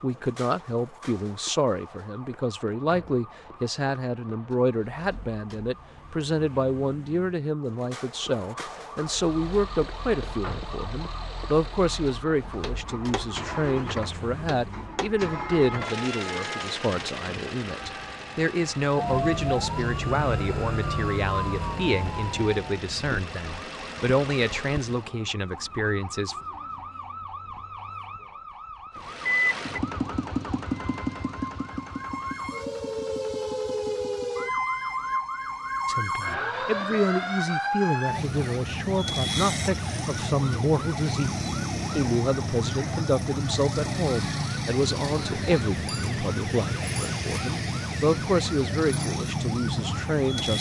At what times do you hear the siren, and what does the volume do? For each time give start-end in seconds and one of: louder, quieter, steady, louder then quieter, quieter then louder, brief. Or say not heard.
0.0-50.5 louder.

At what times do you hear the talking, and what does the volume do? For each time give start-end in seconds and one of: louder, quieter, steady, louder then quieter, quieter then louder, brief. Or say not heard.
0.0-26.4 steady
35.9-50.5 steady.